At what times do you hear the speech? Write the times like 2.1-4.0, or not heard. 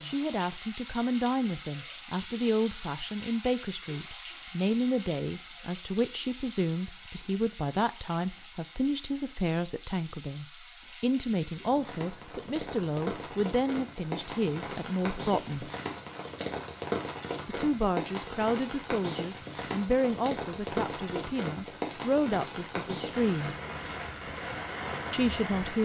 0.0-15.7, 17.4-23.6, 25.1-25.8.